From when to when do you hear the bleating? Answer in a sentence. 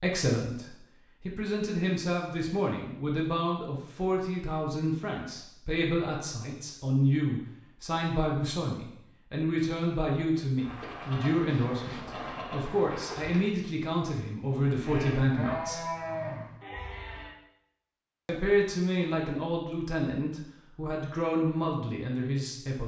You can hear the bleating from 10.6 to 17.4 s.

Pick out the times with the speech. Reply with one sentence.
You can hear the speech from 0.0 to 15.8 s and from 18.2 to 22.8 s.